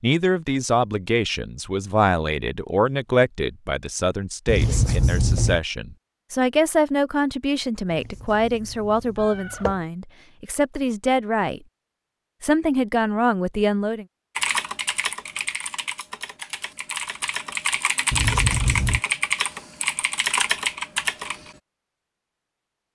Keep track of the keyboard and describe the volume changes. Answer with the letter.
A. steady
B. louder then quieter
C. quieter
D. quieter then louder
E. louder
E.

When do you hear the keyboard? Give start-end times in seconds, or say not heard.
14.3-21.6.